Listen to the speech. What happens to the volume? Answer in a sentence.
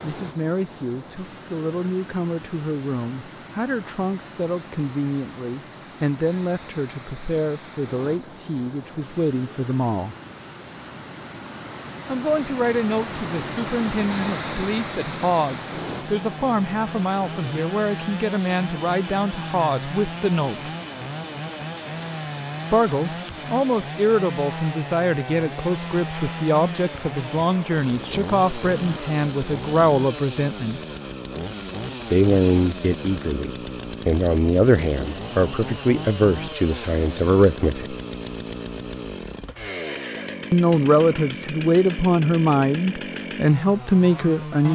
The loudness of the speech goes up.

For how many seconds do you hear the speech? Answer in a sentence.
The speech can be heard for 37 seconds in total.